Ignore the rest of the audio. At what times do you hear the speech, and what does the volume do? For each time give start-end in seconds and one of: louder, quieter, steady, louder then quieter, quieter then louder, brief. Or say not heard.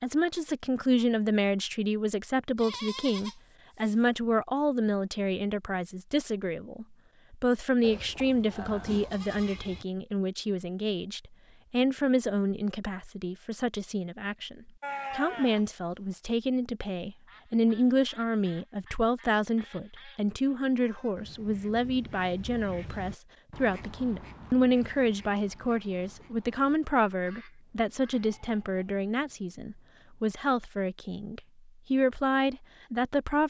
0.0-33.4 steady.